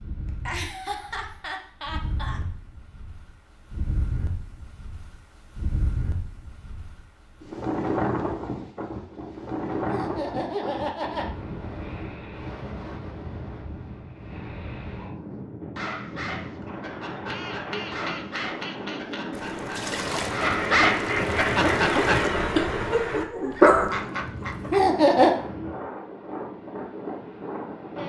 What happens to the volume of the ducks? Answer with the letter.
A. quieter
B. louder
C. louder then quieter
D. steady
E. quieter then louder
C.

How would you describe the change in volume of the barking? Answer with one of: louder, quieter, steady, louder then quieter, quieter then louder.
louder.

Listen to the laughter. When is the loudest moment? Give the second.
25 s.